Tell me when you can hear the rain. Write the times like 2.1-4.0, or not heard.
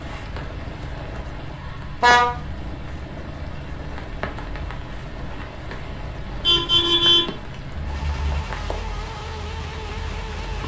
0.0-10.6.